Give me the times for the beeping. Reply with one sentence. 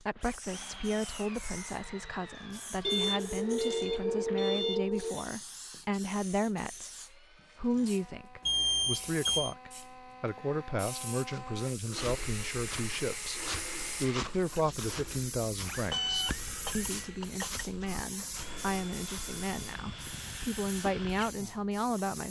The beeping can be heard from 2.9 to 5.2 s, from 8.4 to 9.6 s and from 15.9 to 17.6 s.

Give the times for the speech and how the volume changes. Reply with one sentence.
You can hear the speech from 0.1 to 22.2 s, at a steady volume.